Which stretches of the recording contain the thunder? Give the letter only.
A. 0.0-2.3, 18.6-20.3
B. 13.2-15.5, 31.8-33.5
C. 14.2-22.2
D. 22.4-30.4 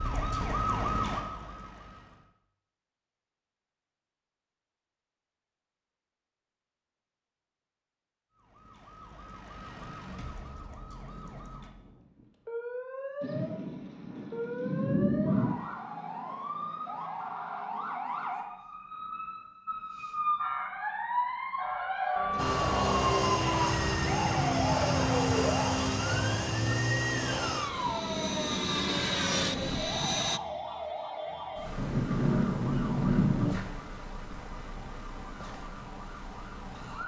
B.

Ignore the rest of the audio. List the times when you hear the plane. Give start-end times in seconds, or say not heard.
22.4-30.4.